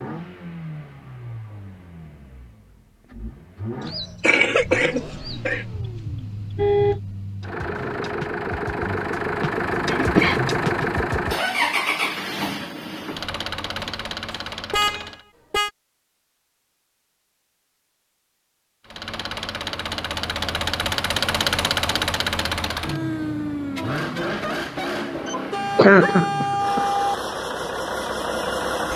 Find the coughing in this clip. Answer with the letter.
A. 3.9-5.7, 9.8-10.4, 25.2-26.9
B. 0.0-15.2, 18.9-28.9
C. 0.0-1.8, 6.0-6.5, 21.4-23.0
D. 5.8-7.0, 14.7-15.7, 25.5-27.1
A.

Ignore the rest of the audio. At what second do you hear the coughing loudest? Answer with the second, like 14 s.
26 s.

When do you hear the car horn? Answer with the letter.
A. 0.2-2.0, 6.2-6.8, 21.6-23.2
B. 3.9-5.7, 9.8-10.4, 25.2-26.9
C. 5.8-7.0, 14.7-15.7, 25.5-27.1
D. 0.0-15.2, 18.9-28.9
C.